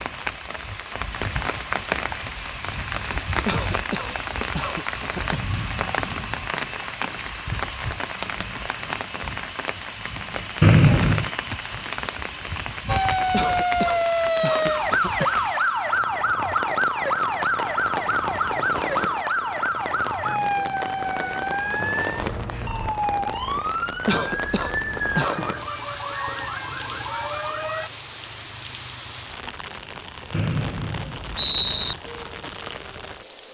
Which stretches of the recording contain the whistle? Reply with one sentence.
You can hear the whistle from 10.6 to 11.3 s and from 30.3 to 31.9 s.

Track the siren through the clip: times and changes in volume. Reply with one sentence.
You can hear the siren from 12.8 to 27.9 s, getting quieter.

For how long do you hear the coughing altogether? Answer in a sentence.
You can hear the coughing for 5 seconds altogether.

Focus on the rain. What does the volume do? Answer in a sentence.
The volume of the rain goes down.